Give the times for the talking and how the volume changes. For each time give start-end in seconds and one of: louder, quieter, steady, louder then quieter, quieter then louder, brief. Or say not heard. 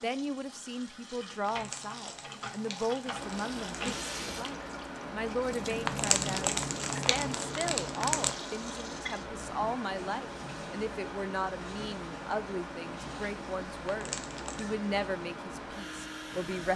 0.0-16.7 steady.